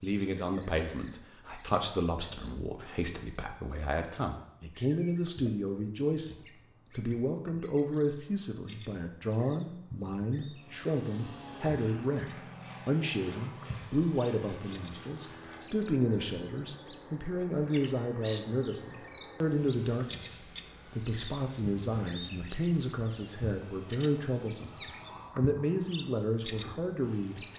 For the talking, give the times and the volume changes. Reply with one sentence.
The talking can be heard from 0.0 to 27.4 s, at a steady volume.